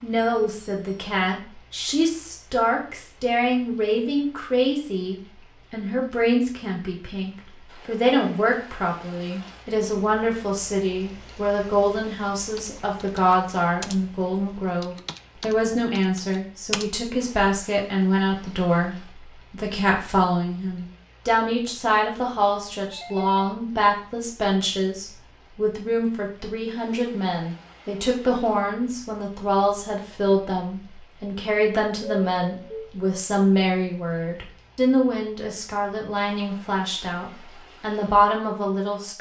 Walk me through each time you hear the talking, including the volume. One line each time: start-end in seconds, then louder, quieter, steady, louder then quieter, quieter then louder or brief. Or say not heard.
0.0-39.1 steady.